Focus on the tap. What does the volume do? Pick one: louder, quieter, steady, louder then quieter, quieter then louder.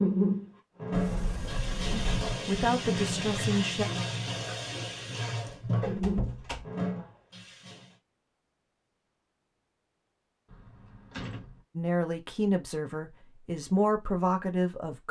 steady.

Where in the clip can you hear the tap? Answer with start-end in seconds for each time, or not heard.
0.0-8.0.